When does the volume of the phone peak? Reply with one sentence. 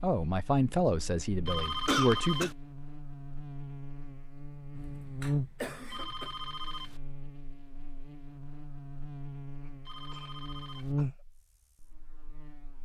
The loudest moment of the phone is at 2 seconds.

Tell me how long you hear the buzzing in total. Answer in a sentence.
The buzzing can be heard for 13 seconds in total.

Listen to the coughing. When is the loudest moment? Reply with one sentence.
The loudest moment of the coughing is at 2 seconds.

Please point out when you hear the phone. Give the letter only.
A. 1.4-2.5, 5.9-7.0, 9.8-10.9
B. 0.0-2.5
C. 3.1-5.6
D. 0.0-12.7
A.